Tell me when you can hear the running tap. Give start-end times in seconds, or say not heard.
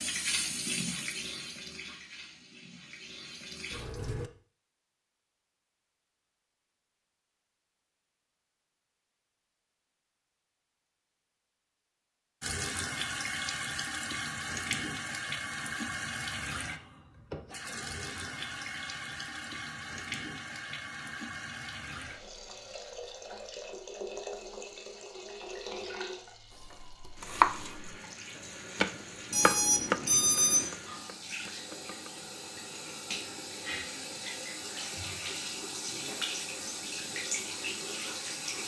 0.0-4.3, 12.4-38.6.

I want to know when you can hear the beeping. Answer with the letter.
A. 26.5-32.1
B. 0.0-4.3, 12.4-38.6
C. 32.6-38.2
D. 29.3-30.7
D.